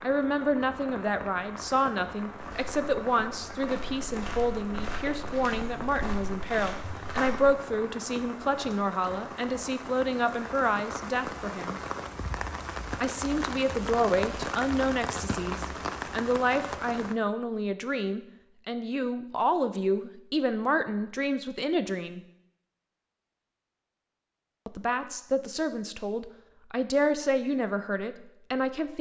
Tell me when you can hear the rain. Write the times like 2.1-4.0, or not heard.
0.0-17.1.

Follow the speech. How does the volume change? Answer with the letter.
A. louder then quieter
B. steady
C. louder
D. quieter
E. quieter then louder
B.